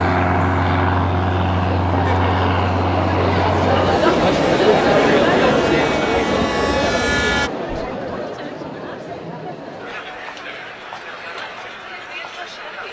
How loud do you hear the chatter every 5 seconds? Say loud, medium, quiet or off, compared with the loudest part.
loud, loud, quiet.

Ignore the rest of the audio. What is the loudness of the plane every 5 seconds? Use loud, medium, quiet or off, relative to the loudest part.
loud, loud, off.